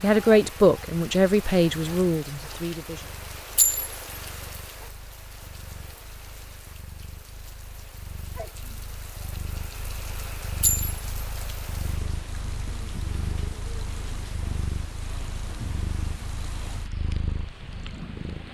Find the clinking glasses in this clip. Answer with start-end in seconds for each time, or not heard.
3.5-4.0, 10.6-11.0.